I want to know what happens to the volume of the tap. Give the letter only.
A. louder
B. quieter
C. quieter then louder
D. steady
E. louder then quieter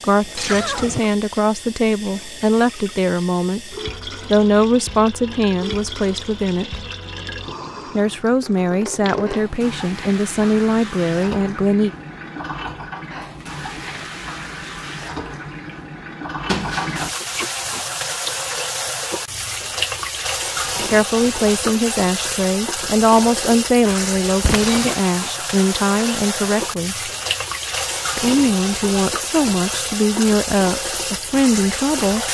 A.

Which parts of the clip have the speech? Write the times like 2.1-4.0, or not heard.
0.0-6.8, 8.0-11.9, 20.9-27.1, 28.1-32.2.